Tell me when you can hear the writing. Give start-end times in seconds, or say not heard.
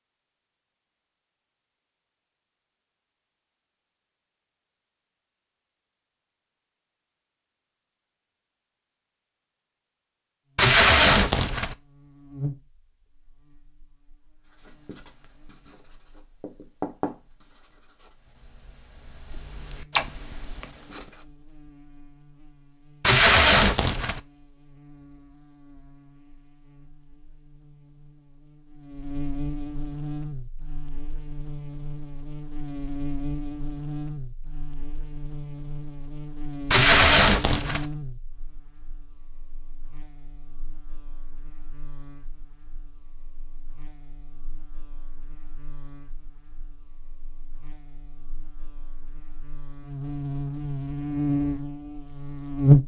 14.4-21.2.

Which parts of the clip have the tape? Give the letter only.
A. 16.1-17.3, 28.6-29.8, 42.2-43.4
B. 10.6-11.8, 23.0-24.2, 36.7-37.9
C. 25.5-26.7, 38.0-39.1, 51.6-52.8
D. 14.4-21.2
B.